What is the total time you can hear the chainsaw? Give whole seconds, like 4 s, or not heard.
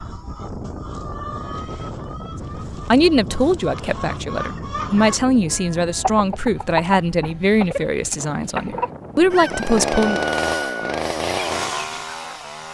3 s.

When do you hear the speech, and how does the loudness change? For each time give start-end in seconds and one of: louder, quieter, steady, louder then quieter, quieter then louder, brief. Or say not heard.
2.7-10.2 steady.